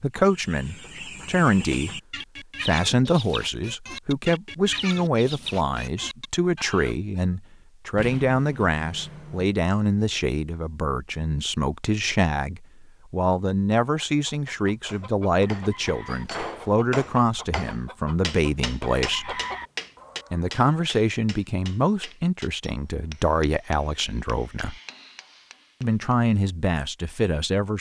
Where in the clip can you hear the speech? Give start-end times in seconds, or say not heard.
0.0-2.0, 2.6-19.4, 20.3-24.8, 25.8-27.7.